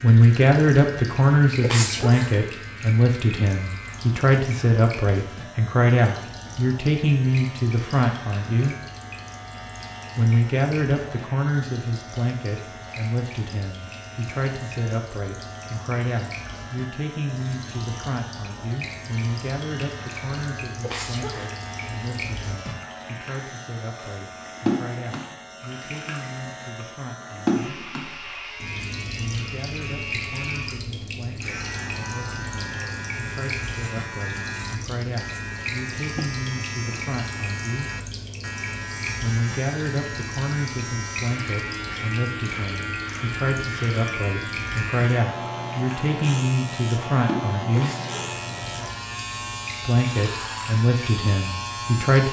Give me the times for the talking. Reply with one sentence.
You can hear the talking from 0.0 to 8.8 s, from 10.2 to 27.8 s, from 29.1 to 37.9 s, from 39.2 to 47.9 s and from 49.9 to 52.2 s.